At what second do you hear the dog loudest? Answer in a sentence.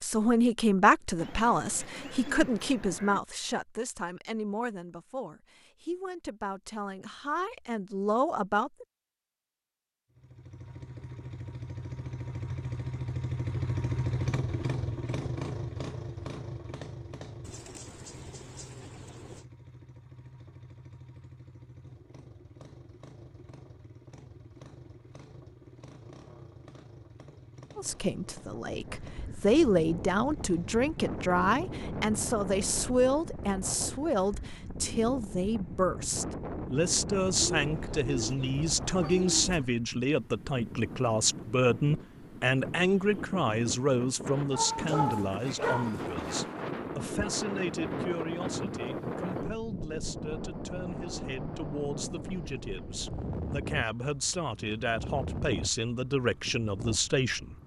The volume of the dog peaks at 45 seconds.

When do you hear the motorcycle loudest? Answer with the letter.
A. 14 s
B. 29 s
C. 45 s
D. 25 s
A.